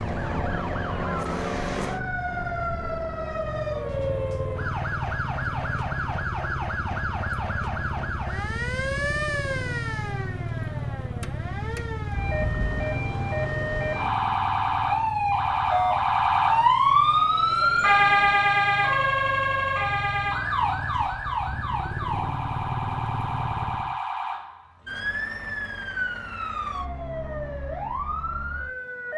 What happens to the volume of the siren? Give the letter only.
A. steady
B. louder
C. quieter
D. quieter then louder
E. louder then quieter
E.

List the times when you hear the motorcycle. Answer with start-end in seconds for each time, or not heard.
0.0-23.9.